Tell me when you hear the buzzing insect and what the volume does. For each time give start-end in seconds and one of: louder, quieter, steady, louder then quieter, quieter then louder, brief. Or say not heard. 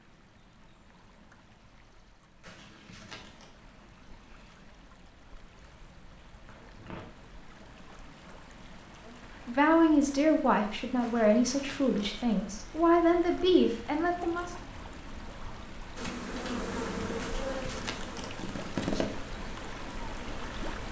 15.9-20.8 quieter.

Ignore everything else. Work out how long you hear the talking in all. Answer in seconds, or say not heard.
5 s.